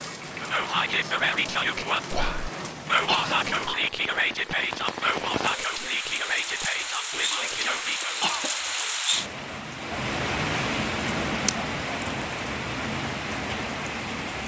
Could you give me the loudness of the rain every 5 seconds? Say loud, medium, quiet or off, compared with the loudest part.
medium, loud, loud.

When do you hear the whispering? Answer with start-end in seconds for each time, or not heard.
0.4-8.2.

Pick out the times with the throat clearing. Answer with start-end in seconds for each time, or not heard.
3.0-3.8, 8.2-8.9.